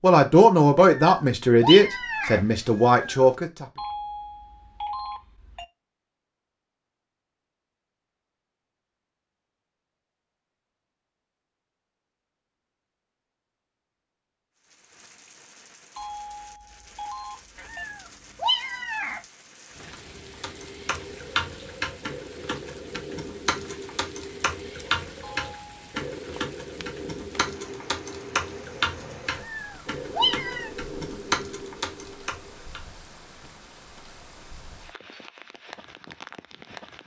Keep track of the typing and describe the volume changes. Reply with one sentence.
The loudness of the typing stays about the same.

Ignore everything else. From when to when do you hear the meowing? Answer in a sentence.
The meowing can be heard from 0.9 to 3.3 s, from 17.6 to 19.2 s and from 29.3 to 30.7 s.